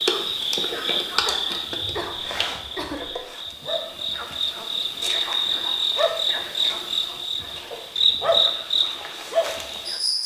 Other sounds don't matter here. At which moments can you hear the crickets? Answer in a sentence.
The crickets can be heard from 0.0 to 10.2 s.